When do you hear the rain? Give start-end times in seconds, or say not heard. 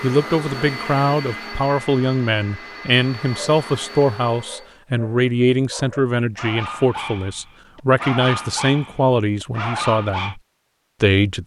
not heard.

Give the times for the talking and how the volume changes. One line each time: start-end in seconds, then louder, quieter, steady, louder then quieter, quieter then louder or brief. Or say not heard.
0.0-10.4 steady
11.0-11.4 brief.